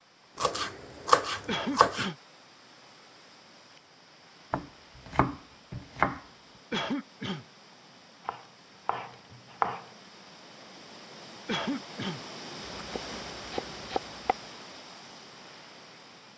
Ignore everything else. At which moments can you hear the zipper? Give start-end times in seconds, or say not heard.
not heard.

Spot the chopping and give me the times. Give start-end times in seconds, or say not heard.
0.3-2.1, 4.5-6.2, 8.2-9.8, 12.7-14.3.